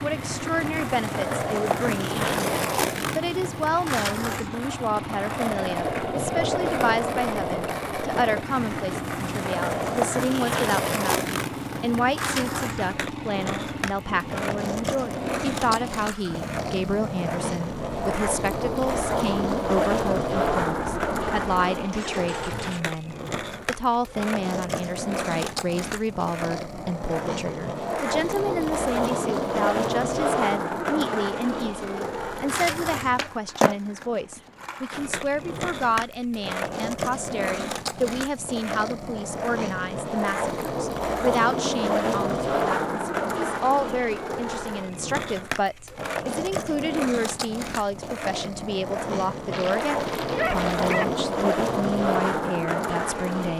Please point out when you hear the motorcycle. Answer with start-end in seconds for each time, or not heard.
0.0-22.8.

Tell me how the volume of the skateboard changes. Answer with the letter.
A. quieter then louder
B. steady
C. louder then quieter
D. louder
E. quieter
B.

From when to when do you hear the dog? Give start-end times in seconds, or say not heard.
49.5-51.0.